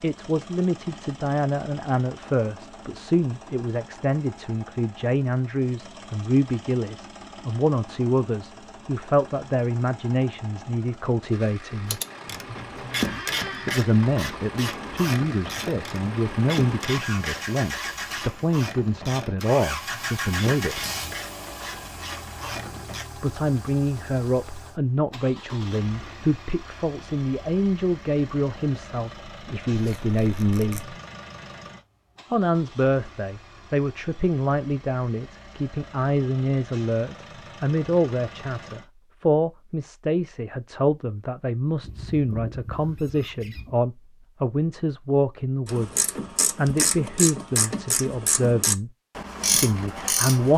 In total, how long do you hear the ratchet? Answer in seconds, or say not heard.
16 s.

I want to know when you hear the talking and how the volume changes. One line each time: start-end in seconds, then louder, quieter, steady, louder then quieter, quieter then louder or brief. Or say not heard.
0.0-12.0 steady
13.7-20.9 steady
23.1-30.9 steady
32.3-48.9 steady
49.5-50.5 brief.